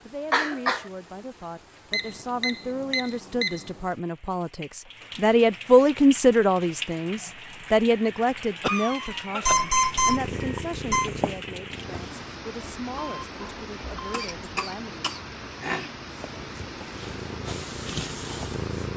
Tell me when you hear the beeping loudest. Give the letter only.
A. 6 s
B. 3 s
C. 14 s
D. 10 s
D.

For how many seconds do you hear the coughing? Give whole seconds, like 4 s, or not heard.
3 s.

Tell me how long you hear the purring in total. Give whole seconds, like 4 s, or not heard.
5 s.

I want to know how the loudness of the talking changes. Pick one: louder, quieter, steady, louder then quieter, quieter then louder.
louder then quieter.